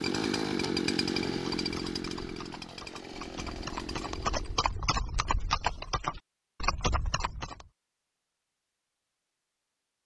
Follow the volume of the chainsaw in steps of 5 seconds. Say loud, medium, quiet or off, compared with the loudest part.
loud, off.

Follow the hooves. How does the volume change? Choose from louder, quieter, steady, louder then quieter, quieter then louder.
louder.